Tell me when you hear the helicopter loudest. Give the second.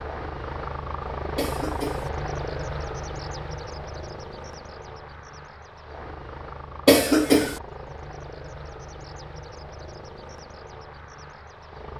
2 s.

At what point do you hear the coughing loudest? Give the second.
7 s.